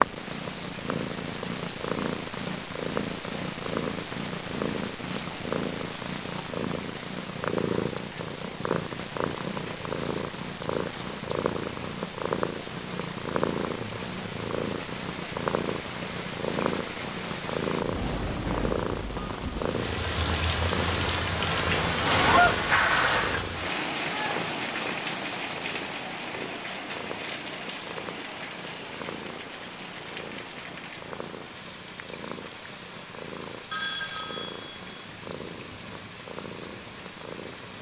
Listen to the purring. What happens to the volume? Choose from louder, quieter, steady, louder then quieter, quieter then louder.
quieter.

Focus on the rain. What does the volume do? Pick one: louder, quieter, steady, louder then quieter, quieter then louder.
louder then quieter.